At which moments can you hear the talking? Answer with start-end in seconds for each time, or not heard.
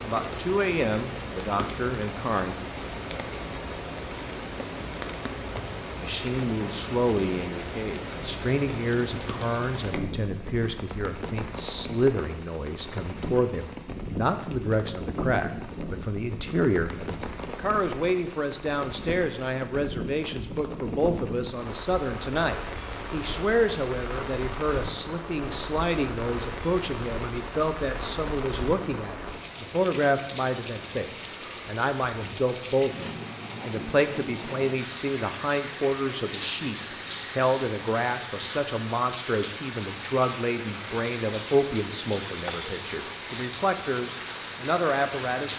0.0-2.5, 6.0-36.8, 37.4-45.5.